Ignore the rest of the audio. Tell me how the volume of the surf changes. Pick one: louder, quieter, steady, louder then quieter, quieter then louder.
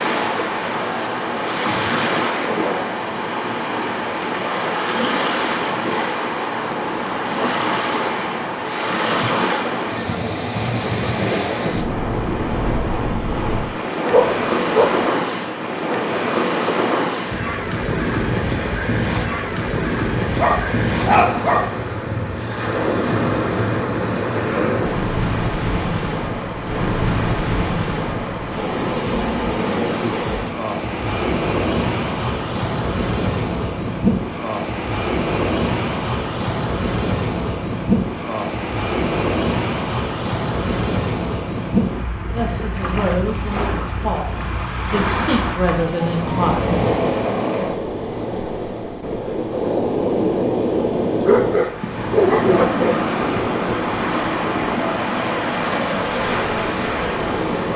steady.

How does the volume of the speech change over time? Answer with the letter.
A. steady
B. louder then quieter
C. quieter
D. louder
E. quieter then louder
E.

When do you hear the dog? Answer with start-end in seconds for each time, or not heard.
14.1-15.1, 20.4-21.7, 51.0-53.0.